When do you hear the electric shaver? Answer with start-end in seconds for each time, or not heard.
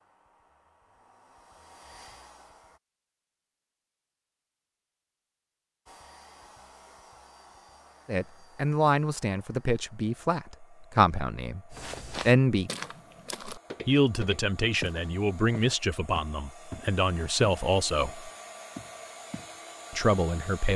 not heard.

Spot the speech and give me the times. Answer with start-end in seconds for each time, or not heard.
8.1-12.7, 13.8-18.3, 19.9-20.7.